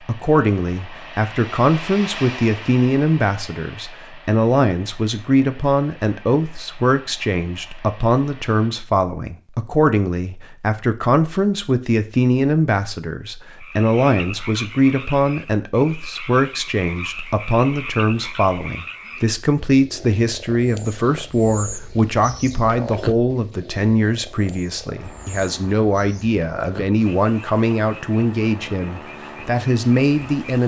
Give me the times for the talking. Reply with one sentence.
You can hear the talking from 0.1 to 30.6 s.